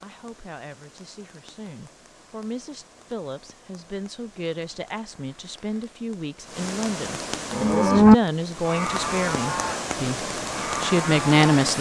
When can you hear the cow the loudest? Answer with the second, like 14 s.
8 s.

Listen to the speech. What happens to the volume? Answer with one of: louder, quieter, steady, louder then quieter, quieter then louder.
louder.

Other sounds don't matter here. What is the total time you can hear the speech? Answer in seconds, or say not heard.
12 s.